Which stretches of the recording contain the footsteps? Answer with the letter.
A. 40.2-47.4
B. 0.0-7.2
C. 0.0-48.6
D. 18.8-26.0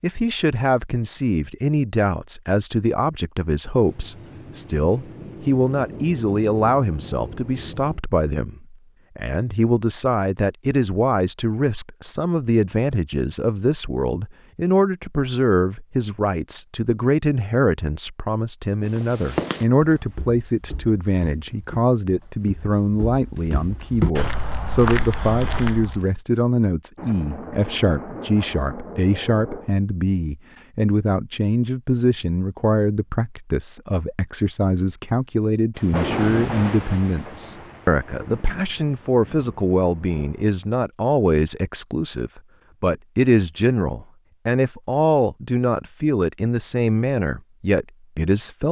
D.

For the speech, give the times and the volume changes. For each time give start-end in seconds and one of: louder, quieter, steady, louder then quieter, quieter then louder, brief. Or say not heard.
0.0-48.6 steady.